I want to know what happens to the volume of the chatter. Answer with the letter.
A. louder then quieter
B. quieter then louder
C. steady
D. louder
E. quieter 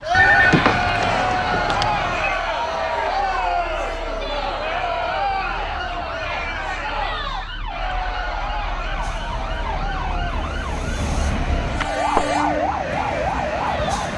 E.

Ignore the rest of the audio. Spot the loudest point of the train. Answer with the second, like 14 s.
12 s.